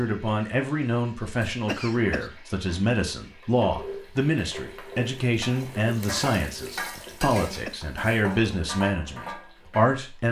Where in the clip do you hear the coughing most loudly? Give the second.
2 s.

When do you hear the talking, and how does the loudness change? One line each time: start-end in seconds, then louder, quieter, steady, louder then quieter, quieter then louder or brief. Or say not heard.
0.0-10.2 steady.